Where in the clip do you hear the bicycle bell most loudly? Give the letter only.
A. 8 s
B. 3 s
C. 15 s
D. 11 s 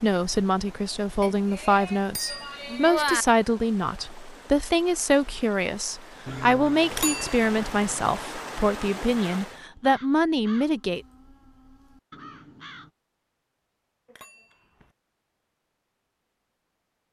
B.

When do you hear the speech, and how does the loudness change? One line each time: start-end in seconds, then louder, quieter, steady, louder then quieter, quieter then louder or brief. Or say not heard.
0.0-11.0 steady.